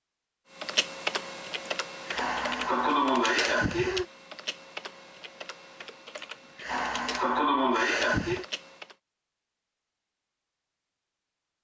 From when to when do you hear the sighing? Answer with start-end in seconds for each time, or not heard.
1.6-4.0, 6.2-8.4.